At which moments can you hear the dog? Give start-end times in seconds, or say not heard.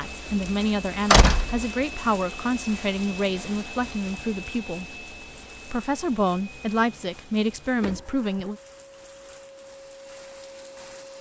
not heard.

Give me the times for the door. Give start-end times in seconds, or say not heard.
1.1-1.6, 7.8-8.5.